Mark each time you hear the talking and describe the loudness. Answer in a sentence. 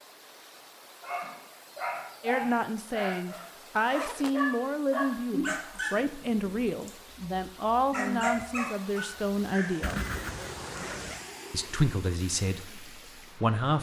You can hear the talking from 2.2 to 10.1 s, at a steady volume; and briefly from 11.5 to 13.7 s.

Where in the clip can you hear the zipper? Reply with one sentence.
The zipper can be heard from 3.1 to 4.4 s and from 9.8 to 11.2 s.